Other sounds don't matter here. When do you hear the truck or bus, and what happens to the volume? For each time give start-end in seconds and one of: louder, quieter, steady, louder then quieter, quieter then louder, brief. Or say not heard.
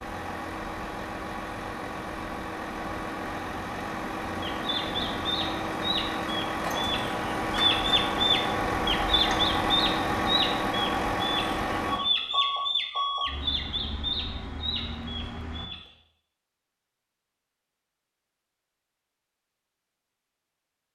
0.0-15.7 louder then quieter.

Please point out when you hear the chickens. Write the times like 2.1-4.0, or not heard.
4.4-15.8.